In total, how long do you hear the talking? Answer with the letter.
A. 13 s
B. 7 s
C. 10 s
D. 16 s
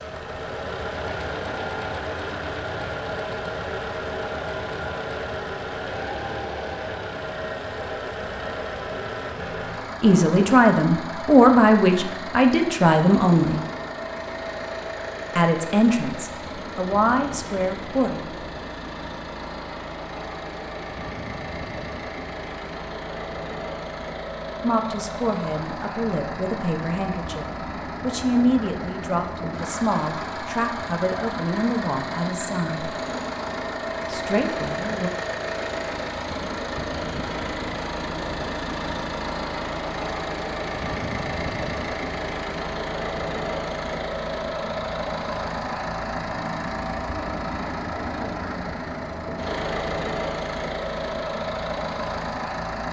D.